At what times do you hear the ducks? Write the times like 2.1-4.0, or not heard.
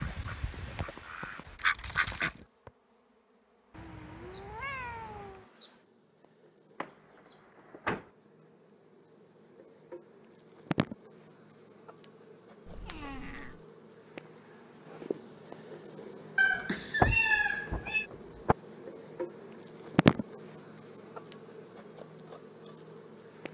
0.0-2.4.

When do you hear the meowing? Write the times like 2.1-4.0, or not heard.
3.7-5.5, 12.7-13.6, 16.4-18.1.